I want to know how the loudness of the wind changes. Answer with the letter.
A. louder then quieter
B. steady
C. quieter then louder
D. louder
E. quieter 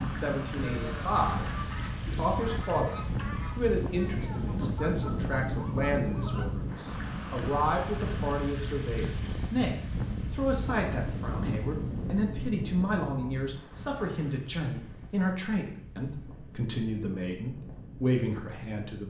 E.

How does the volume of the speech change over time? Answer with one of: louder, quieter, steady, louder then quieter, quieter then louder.
steady.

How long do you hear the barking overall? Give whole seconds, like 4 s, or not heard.
not heard.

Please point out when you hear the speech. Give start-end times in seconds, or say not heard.
0.0-19.0.